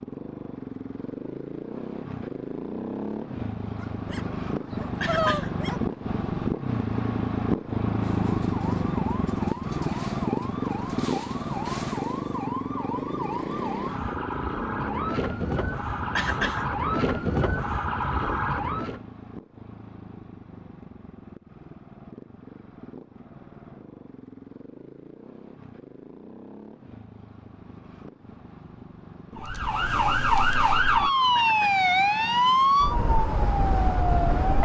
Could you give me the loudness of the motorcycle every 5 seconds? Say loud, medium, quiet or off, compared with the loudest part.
medium, loud, loud, quiet, quiet, quiet, quiet.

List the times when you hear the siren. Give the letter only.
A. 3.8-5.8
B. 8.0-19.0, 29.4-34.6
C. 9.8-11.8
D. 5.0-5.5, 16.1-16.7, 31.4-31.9
B.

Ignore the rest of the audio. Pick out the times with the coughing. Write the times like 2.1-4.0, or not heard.
5.0-5.5, 16.1-16.7, 31.4-31.9.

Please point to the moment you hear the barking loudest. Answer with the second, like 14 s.
5 s.